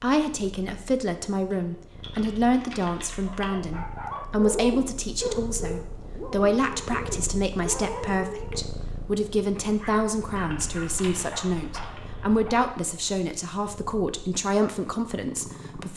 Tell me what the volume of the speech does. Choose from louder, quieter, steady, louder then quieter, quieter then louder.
steady.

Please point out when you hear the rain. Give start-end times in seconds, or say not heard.
not heard.